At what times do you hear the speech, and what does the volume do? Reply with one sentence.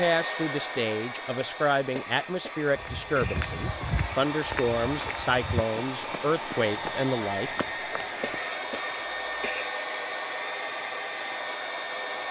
The speech can be heard from 0.0 to 7.5 s, at a steady volume.